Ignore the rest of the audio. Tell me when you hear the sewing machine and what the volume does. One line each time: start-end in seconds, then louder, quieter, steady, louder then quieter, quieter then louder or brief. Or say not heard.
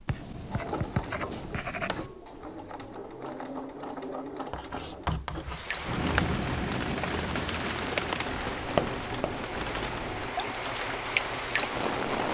0.0-12.1 steady.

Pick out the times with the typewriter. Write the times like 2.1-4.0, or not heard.
not heard.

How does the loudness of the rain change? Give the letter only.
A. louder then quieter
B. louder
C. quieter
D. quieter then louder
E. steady
D.